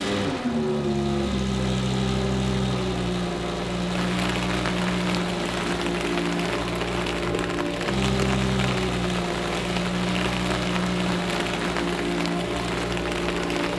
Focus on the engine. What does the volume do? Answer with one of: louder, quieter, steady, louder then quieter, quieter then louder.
steady.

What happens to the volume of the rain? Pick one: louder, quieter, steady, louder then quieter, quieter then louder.
steady.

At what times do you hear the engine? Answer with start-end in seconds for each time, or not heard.
0.0-13.7.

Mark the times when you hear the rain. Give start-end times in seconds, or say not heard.
3.9-13.7.